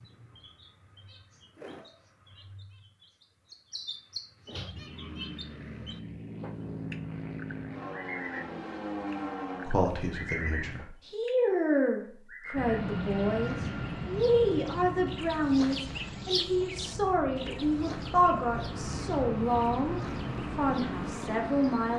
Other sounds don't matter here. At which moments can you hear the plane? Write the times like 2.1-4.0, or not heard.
4.7-10.8, 12.6-21.9.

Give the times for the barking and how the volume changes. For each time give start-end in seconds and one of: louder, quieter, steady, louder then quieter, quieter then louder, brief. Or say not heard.
not heard.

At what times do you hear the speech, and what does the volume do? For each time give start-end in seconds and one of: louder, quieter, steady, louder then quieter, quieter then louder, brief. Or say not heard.
9.7-21.9 steady.